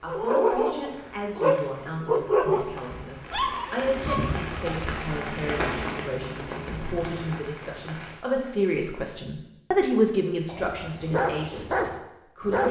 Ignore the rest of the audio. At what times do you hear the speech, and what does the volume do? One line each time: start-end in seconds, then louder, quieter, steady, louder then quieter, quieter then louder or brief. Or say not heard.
0.0-12.6 louder.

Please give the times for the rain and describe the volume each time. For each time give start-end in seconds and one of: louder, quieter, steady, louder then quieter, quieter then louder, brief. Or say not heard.
0.0-8.2 louder then quieter.